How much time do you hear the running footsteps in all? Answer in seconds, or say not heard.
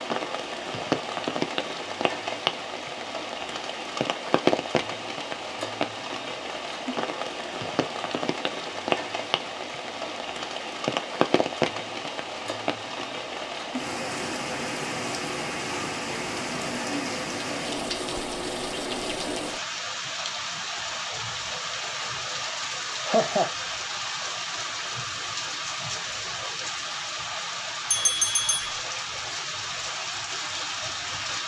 not heard.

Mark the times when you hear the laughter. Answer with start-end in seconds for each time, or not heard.
22.7-23.5.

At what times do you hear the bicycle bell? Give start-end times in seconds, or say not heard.
27.9-28.7.